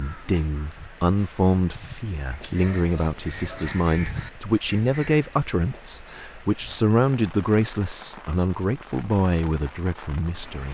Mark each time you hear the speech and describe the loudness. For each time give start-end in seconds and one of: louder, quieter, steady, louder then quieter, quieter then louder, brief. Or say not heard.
0.0-10.6 steady.